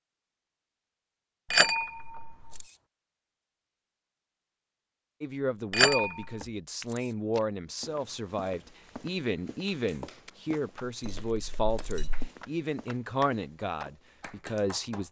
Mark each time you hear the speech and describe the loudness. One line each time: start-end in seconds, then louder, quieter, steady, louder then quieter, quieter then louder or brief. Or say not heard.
5.2-15.0 steady.